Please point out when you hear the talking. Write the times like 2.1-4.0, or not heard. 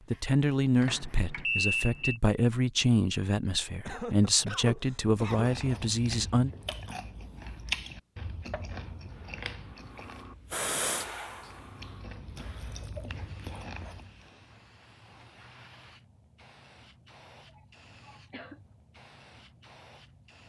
0.1-6.5.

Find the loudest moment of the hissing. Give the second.
11 s.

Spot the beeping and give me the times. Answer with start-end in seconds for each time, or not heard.
0.8-2.2.